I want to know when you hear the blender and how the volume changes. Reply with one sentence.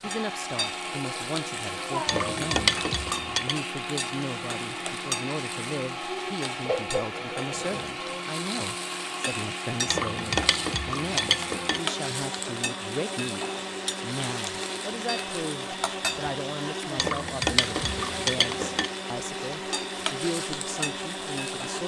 The blender can be heard from 0.0 to 21.8 s, at a steady volume.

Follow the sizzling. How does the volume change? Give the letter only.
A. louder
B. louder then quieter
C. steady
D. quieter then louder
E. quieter
C.